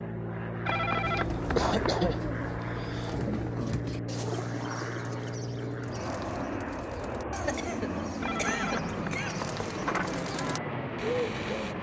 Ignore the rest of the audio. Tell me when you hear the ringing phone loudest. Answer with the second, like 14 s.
1 s.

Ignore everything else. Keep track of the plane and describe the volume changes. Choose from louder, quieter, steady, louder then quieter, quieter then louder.
steady.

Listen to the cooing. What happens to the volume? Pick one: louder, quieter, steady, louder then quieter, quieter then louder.
quieter then louder.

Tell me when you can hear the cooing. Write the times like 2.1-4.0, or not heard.
1.1-11.7.